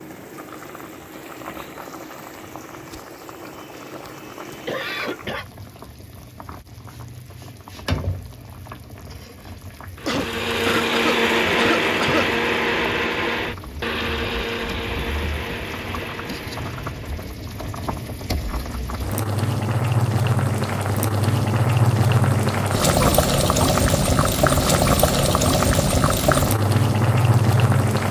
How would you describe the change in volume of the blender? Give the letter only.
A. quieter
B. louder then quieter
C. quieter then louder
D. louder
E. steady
A.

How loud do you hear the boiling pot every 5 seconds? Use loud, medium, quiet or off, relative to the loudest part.
quiet, quiet, quiet, medium, loud, loud.